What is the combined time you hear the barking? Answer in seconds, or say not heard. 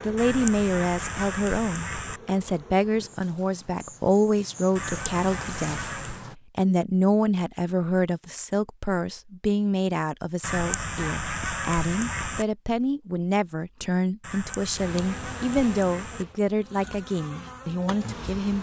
not heard.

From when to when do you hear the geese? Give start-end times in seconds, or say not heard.
0.1-2.2, 4.8-6.2, 10.4-12.4, 14.2-16.2.